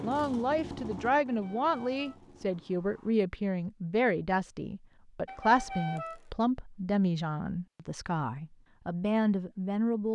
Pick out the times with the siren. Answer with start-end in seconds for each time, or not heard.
not heard.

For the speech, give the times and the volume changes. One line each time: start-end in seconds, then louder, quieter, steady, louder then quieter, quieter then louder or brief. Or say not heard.
0.0-10.1 steady.